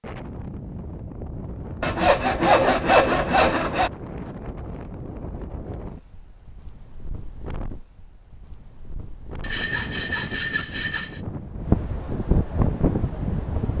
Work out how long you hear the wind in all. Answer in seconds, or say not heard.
14 s.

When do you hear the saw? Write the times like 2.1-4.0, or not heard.
1.8-3.9, 9.4-11.2.